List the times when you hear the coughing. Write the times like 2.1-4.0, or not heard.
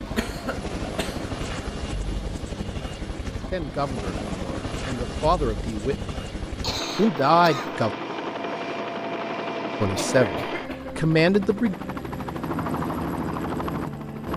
0.1-1.4, 6.6-7.7, 9.9-10.9.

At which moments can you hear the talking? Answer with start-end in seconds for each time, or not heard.
3.5-6.1, 7.0-7.9, 9.8-11.8.